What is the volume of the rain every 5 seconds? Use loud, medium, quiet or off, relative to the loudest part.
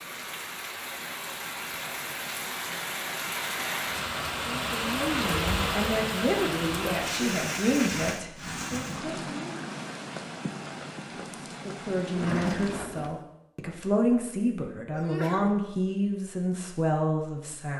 loud, loud, medium, off.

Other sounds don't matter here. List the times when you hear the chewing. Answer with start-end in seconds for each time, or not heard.
not heard.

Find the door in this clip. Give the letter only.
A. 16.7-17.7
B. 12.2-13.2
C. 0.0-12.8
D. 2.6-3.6
B.